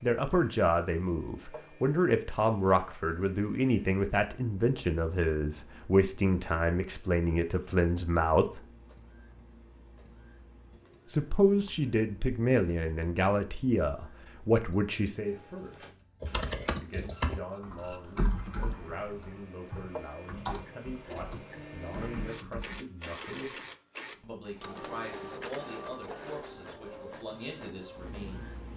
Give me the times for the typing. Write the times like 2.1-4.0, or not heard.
16.2-22.8.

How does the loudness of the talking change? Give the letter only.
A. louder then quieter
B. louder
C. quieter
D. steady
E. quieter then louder
C.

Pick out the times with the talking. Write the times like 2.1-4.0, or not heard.
0.0-8.6, 11.1-15.8, 16.8-23.6, 24.2-28.7.